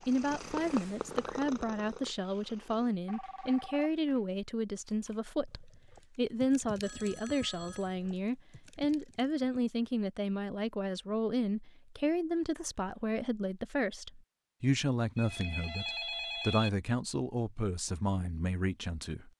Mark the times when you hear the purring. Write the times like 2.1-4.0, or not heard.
0.0-3.0.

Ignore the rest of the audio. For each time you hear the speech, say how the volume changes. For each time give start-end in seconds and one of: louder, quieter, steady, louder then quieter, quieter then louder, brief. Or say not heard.
0.1-19.3 steady.